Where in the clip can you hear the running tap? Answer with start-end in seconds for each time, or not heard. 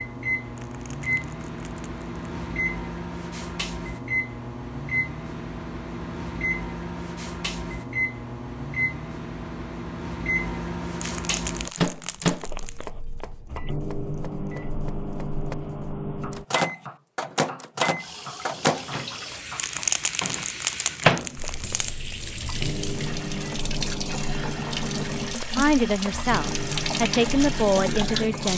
17.9-28.5.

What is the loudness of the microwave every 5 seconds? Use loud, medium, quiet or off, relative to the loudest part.
loud, loud, loud, loud, loud, medium.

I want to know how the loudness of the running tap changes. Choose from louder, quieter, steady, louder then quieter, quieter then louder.
louder.